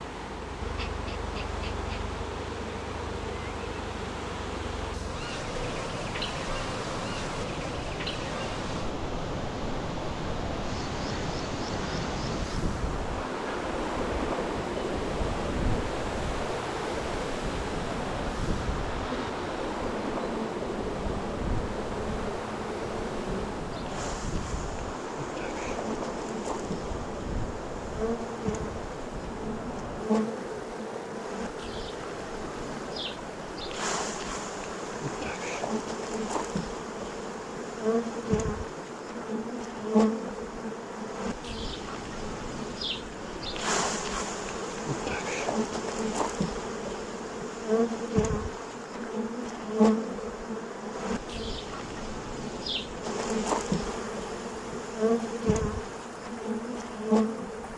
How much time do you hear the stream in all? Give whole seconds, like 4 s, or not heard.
58 s.